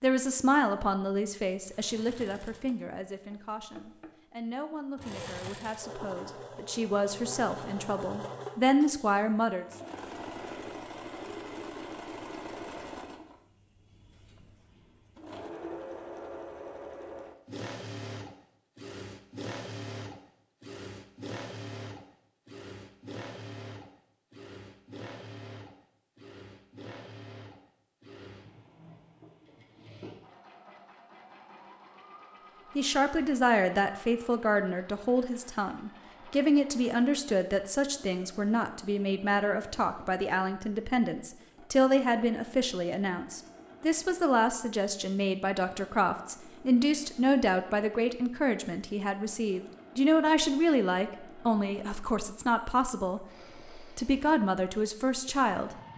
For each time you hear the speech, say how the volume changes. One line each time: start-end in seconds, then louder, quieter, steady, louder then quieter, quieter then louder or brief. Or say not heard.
0.0-9.7 quieter then louder
32.8-55.8 steady.